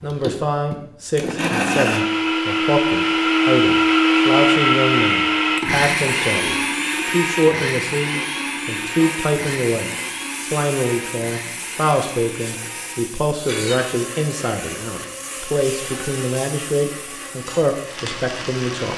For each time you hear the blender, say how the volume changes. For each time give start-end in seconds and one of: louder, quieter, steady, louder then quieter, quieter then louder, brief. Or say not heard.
0.0-18.9 quieter.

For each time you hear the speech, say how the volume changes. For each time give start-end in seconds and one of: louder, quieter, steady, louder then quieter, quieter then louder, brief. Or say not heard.
0.0-18.9 steady.